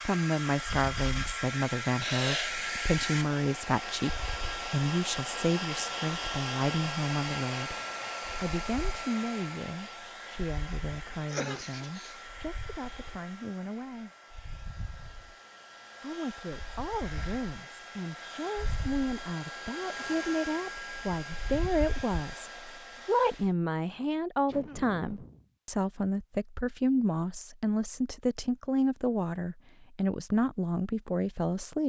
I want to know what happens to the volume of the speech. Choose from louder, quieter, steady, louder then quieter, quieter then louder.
quieter then louder.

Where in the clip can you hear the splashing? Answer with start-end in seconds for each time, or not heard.
not heard.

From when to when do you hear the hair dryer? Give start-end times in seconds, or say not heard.
0.0-23.5.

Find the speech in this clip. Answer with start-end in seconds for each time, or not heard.
0.1-7.8, 8.3-14.1, 16.0-31.8.